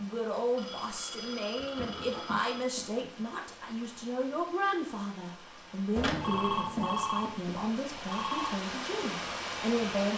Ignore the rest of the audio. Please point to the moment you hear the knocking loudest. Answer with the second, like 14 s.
7 s.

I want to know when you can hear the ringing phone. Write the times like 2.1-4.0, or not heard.
0.6-2.6, 6.0-8.6.